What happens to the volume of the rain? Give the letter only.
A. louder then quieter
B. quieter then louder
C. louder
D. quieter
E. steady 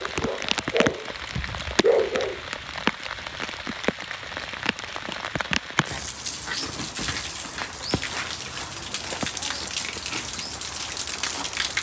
E.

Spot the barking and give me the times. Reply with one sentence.
You can hear the barking from 0.0 to 2.4 s.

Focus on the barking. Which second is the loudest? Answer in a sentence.
The loudest moment of the barking is at 2 seconds.